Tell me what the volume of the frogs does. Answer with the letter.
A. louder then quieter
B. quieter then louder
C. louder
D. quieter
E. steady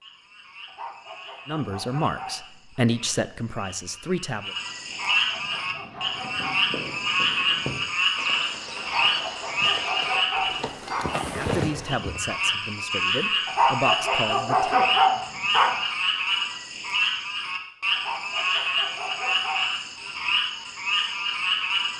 C.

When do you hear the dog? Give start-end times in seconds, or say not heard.
0.7-2.8, 4.9-6.5, 8.8-11.2, 13.4-15.8, 17.9-19.7.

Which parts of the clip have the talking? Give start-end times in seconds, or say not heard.
1.4-4.5, 11.3-14.8.